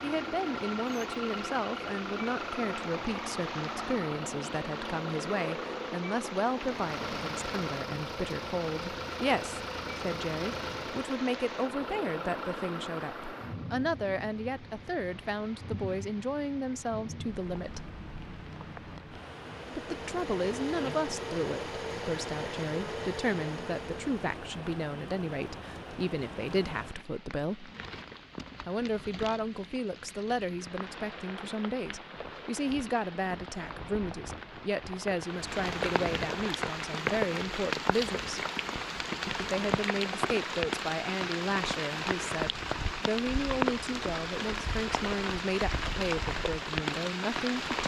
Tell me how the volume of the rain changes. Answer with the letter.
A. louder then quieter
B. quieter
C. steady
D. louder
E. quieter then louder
D.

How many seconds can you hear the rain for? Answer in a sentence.
The rain can be heard for 48 seconds in total.